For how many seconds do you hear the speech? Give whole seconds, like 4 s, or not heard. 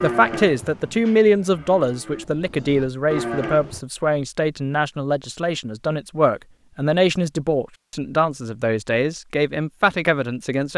11 s.